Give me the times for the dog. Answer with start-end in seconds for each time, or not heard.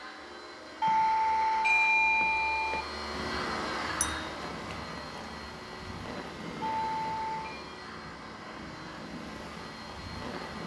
not heard.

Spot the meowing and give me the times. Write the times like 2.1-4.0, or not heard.
not heard.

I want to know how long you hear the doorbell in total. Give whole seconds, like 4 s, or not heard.
3 s.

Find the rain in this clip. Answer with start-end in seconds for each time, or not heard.
3.1-10.6.